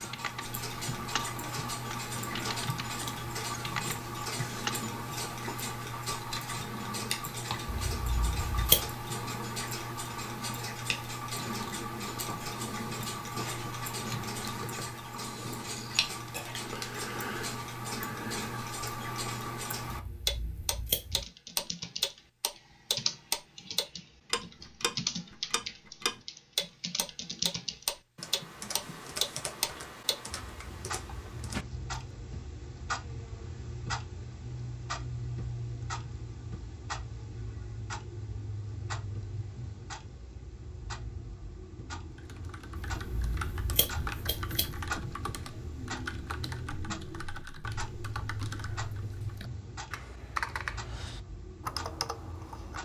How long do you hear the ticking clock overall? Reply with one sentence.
The ticking clock can be heard for 53 seconds in total.